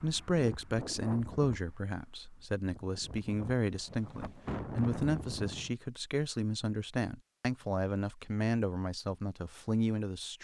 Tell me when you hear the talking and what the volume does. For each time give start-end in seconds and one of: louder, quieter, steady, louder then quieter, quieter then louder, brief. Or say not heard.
0.0-10.3 steady.